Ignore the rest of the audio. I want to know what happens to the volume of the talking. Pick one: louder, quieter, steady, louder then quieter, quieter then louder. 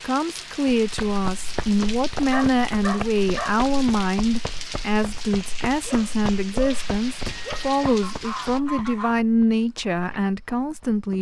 steady.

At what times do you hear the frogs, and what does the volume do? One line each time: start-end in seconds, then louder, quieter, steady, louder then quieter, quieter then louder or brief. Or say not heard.
not heard.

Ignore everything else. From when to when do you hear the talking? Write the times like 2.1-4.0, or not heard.
0.0-11.1.